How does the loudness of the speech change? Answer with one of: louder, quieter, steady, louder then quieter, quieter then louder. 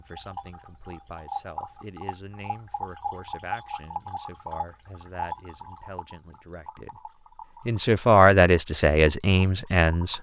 louder.